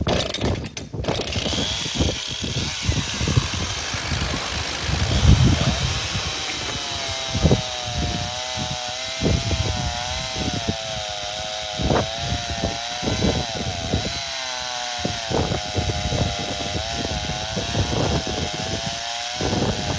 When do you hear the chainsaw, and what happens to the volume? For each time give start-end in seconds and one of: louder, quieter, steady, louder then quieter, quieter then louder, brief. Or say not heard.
0.0-19.9 steady.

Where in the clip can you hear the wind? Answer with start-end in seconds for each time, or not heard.
0.0-19.9.